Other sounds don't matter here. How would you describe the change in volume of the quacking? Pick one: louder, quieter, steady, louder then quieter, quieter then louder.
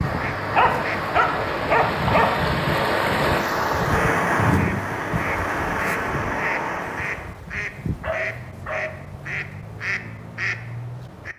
steady.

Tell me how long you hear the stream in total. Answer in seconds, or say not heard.
7 s.